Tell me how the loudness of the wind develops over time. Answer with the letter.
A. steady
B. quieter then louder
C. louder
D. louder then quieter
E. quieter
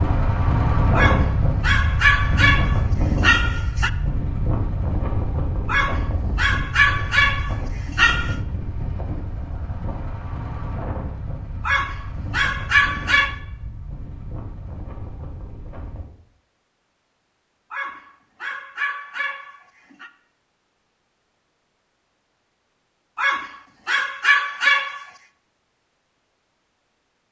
E.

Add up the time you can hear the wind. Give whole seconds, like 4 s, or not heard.
16 s.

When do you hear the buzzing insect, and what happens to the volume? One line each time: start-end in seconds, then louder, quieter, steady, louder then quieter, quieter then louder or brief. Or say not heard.
not heard.